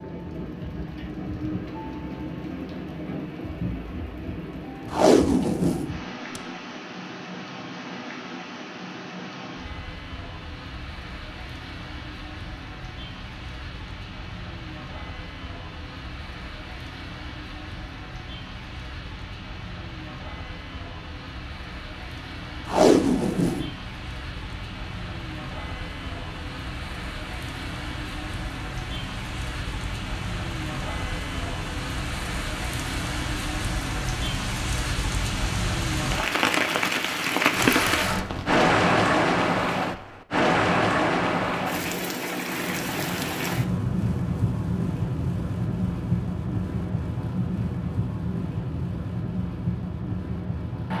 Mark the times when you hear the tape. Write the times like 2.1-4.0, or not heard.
4.9-6.4, 22.6-23.7, 37.5-38.6.